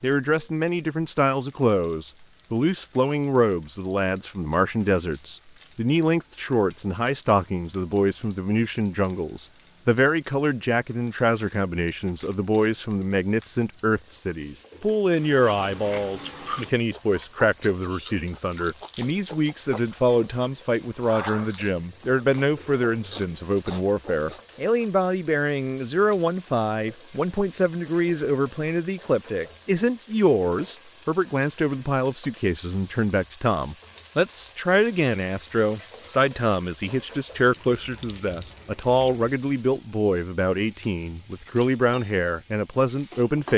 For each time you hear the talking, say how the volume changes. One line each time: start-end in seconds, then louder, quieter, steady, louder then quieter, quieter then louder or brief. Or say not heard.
0.0-43.5 steady.